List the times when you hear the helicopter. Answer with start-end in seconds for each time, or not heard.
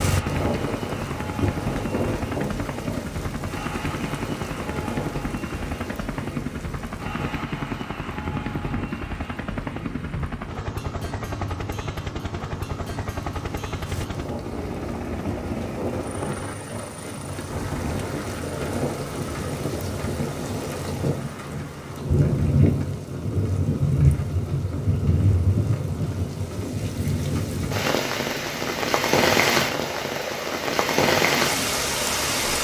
0.0-32.5.